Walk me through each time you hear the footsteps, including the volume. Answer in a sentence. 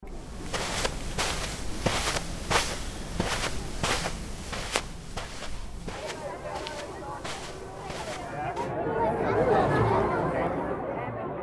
You can hear the footsteps from 0.1 to 8.7 s, getting quieter.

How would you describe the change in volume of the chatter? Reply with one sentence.
The loudness of the chatter goes up.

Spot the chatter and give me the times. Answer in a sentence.
The chatter can be heard from 0.0 to 11.3 s.